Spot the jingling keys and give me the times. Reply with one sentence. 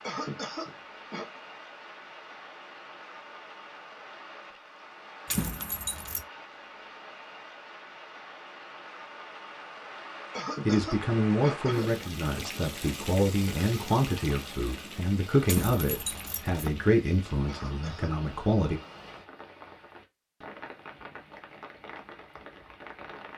You can hear the jingling keys from 5.2 to 6.2 s and from 15.4 to 16.8 s.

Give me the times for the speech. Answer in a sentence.
The speech can be heard from 10.7 to 18.8 s.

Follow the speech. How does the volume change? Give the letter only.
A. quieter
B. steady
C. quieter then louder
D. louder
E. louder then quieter
B.